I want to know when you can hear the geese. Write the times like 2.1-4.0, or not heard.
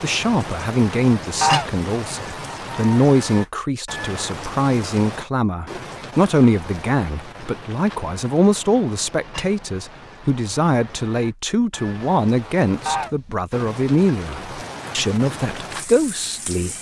1.4-1.9, 12.8-13.3.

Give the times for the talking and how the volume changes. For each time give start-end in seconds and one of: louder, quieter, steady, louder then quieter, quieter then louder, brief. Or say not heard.
0.0-16.7 steady.